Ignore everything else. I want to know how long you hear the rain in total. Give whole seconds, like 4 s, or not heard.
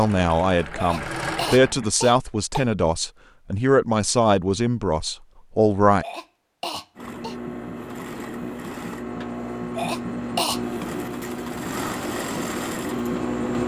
not heard.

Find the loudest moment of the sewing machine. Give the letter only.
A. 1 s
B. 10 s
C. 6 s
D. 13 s
D.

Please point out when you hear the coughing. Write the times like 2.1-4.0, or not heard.
0.8-2.6, 6.0-7.3, 9.8-10.6.